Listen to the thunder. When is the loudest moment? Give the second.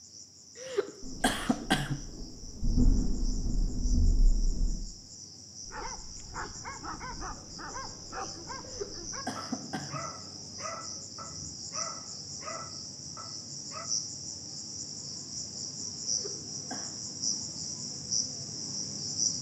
3 s.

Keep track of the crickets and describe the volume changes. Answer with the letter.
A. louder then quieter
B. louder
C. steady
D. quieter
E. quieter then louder
B.